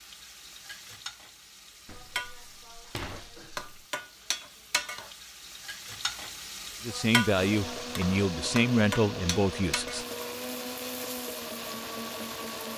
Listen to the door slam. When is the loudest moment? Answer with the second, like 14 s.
3 s.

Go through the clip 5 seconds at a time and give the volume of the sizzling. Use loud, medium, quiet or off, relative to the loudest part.
loud, loud, medium.